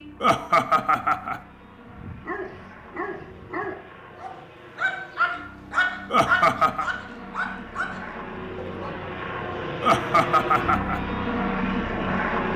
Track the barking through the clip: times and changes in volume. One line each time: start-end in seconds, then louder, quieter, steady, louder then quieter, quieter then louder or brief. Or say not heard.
1.9-8.9 louder then quieter.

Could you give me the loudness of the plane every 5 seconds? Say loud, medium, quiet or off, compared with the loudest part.
quiet, medium, loud.